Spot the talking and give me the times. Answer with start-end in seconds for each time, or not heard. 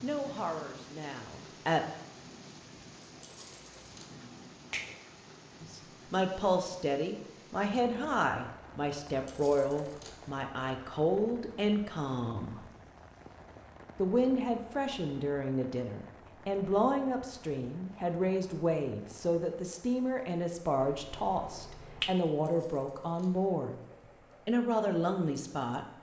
0.0-1.8, 5.6-12.6, 13.9-23.8, 24.4-25.9.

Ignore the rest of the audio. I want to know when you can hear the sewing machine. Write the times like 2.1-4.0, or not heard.
not heard.